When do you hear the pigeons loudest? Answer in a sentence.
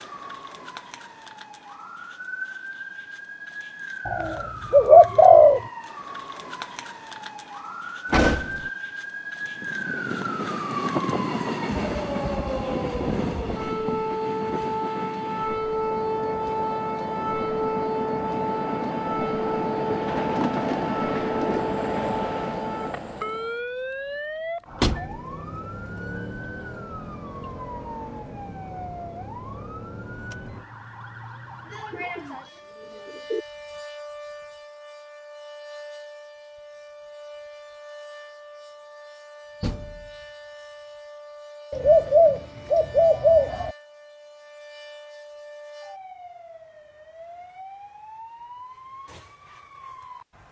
The volume of the pigeons peaks at 5 seconds.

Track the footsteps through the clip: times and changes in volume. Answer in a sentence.
The footsteps can't be heard in this clip.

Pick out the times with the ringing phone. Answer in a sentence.
You can't hear the ringing phone here.